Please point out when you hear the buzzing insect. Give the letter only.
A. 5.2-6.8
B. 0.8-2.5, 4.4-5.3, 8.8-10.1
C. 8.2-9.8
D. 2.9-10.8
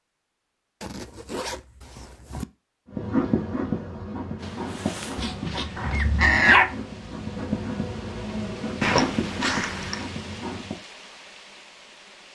D.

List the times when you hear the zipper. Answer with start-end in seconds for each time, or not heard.
0.8-2.5, 4.4-5.3, 8.8-10.1.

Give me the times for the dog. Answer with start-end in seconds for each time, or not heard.
5.2-6.8.